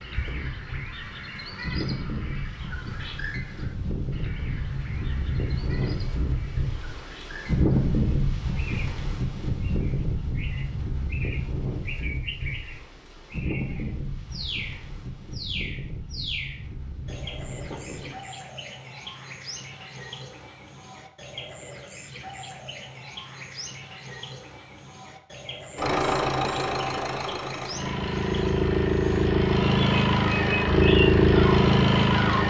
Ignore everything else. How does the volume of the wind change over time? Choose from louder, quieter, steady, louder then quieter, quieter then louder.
louder then quieter.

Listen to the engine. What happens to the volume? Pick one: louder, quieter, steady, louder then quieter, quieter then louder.
louder.